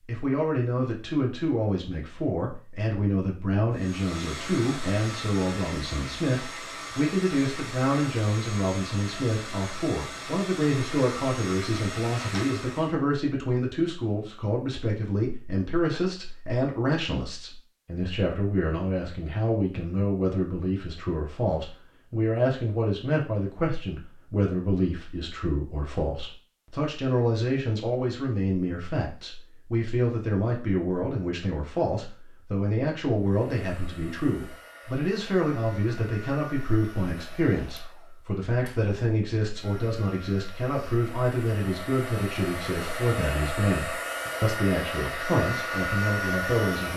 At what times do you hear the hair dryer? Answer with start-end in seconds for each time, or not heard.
3.7-12.9, 33.1-46.9.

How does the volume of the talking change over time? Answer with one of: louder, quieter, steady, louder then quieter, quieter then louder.
steady.